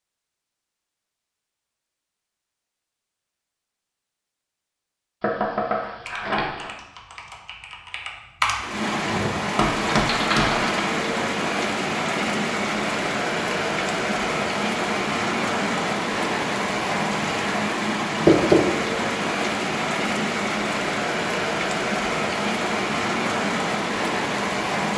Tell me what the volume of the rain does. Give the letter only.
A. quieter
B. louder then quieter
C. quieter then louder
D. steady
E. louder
D.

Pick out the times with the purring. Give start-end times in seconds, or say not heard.
not heard.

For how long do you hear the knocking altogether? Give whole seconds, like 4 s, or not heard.
3 s.